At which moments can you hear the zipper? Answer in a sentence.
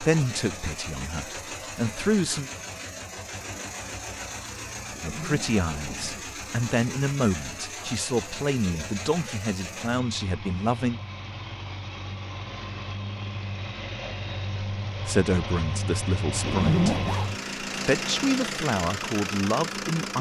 The zipper can be heard from 4.9 to 6.3 s and from 16.4 to 17.3 s.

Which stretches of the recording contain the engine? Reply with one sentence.
The engine can be heard from 0.0 to 20.1 s.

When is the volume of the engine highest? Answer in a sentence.
The loudest moment of the engine is at 18 seconds.